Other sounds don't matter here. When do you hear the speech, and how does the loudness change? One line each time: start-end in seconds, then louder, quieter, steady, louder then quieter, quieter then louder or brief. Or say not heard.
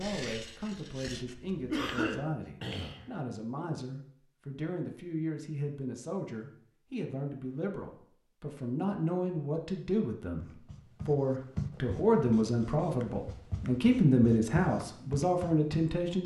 0.0-16.2 louder.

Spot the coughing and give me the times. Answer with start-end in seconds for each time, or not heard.
1.7-3.0.